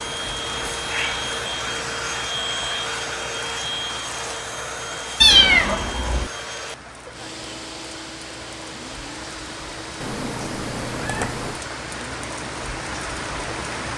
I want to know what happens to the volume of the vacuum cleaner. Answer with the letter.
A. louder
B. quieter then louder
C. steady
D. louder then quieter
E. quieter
E.